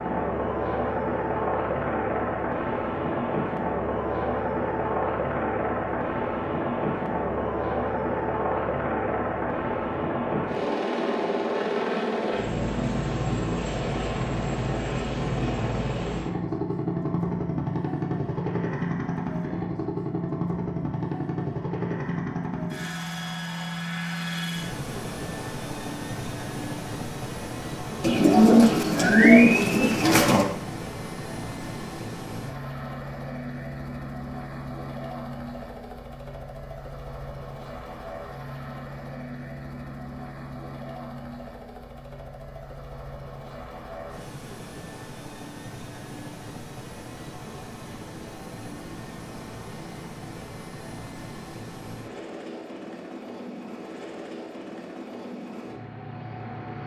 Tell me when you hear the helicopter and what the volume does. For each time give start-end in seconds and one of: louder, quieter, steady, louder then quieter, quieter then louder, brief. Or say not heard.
0.0-56.8 quieter.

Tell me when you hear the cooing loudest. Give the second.
29 s.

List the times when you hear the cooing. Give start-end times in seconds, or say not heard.
28.0-30.4.